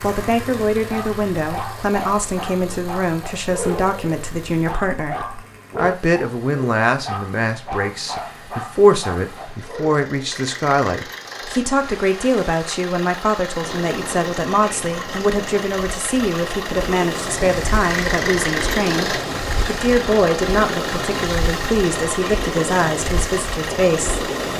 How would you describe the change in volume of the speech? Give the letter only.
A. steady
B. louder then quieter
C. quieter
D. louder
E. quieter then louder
A.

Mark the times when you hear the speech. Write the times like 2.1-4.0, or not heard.
0.0-24.2.